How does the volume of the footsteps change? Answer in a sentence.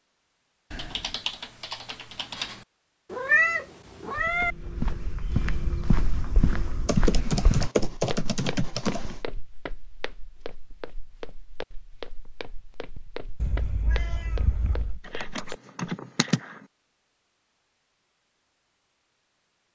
The loudness of the footsteps goes down.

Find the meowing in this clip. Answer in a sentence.
The meowing can be heard from 3.1 to 4.5 s and from 13.4 to 15.0 s.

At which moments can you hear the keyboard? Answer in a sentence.
The keyboard can be heard from 0.7 to 2.6 s, from 6.8 to 9.2 s and from 15.1 to 16.6 s.